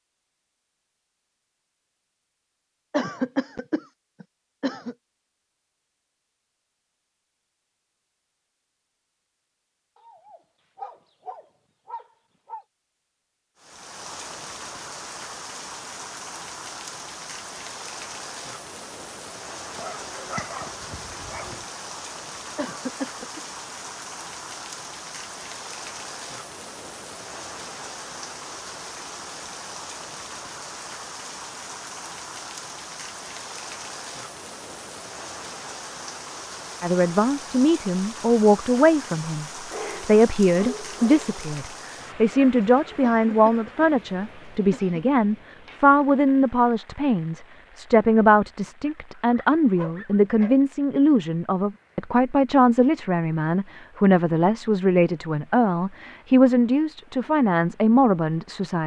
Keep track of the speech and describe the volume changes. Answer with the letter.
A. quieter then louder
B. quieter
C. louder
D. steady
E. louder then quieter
D.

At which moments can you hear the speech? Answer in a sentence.
You can hear the speech from 36.8 to 58.8 s.